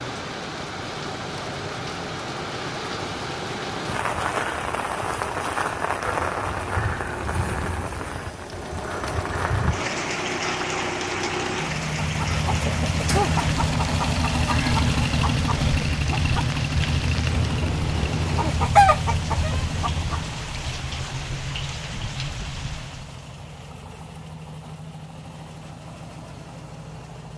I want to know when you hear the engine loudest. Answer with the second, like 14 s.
15 s.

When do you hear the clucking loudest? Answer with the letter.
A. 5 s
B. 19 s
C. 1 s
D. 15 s
B.